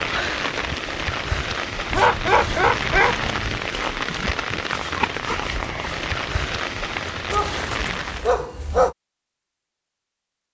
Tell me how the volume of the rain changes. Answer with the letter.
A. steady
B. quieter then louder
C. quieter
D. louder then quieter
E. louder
A.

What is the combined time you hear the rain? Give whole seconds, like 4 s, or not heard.
8 s.